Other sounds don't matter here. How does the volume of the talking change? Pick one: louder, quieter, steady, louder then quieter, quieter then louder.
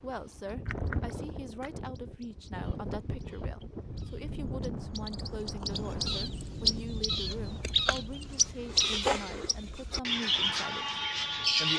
steady.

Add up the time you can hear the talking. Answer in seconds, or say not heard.
12 s.